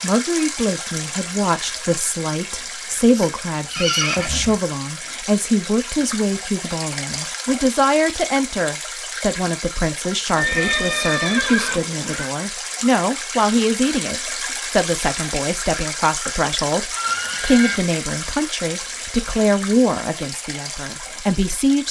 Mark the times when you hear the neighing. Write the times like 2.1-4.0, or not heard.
2.9-4.6, 10.3-12.2, 16.9-17.8.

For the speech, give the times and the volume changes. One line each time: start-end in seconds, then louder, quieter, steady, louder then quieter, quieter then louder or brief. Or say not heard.
0.0-21.8 steady.